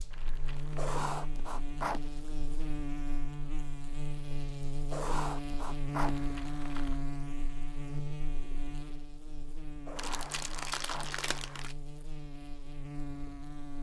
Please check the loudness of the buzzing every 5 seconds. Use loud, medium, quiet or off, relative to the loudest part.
loud, loud, medium.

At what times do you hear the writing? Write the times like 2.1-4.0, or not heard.
0.8-2.2, 4.9-6.2, 9.8-11.2.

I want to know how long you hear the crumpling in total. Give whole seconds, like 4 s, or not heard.
4 s.